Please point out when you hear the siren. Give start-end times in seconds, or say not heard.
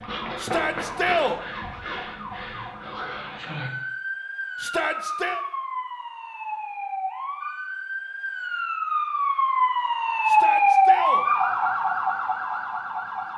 0.0-13.3.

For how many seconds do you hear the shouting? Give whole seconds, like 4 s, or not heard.
3 s.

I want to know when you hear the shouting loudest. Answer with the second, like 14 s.
1 s.